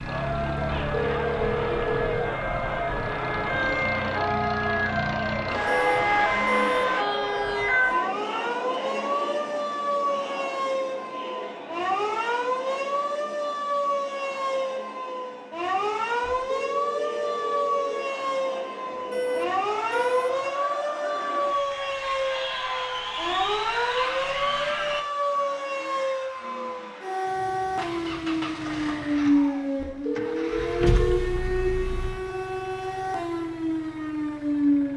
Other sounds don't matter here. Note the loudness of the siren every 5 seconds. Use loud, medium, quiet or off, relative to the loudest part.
medium, loud, loud, loud, loud, loud, loud.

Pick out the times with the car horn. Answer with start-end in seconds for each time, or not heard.
5.7-7.0, 18.9-20.4, 30.8-32.1.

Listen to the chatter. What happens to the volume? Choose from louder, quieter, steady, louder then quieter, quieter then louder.
quieter then louder.